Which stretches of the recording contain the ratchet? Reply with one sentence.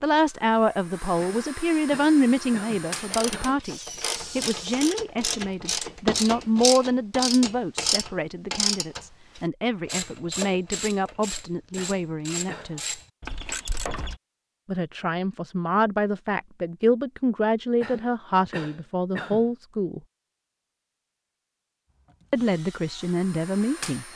You can hear the ratchet from 3.1 to 14.2 s.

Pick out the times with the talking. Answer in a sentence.
You can hear the talking from 0.0 to 12.9 s, from 14.7 to 20.0 s and from 22.3 to 24.1 s.